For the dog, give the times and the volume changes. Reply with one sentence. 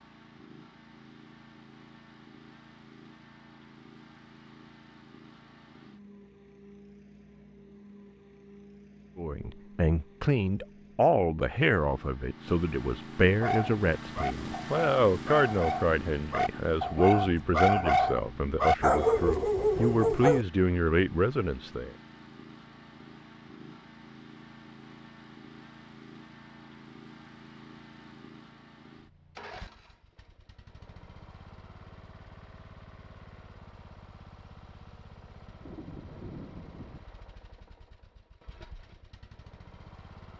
The dog can be heard from 13.4 to 20.4 s, getting louder.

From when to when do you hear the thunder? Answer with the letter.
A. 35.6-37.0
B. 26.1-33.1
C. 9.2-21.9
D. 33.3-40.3
A.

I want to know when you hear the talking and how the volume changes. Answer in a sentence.
The talking can be heard from 9.2 to 21.9 s, at a steady volume.